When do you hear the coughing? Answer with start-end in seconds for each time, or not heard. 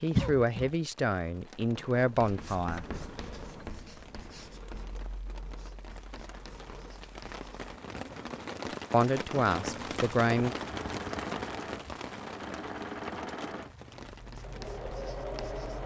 0.1-0.7.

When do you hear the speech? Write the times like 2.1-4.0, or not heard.
0.0-2.9, 8.9-10.6.